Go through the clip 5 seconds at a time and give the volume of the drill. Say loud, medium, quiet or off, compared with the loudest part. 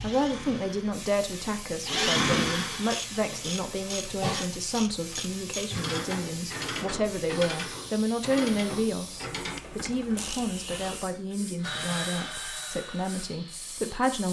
loud, off, medium.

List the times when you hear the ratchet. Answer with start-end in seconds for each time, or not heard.
2.9-10.4.